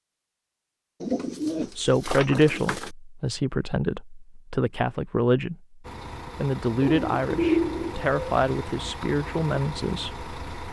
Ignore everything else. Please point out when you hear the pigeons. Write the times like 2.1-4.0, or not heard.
1.0-2.9, 6.8-8.2.